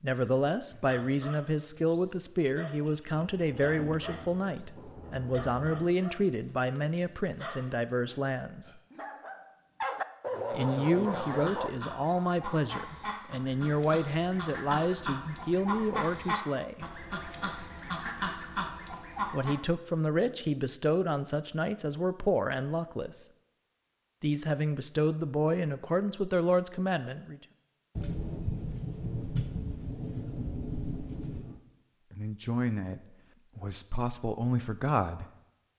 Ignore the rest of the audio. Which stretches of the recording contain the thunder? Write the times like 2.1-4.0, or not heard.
3.3-5.9, 27.9-31.6.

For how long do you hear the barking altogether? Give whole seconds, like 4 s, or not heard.
11 s.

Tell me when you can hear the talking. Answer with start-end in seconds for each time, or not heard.
0.0-8.7, 10.5-16.9, 19.3-23.2, 24.2-27.4, 32.1-35.4.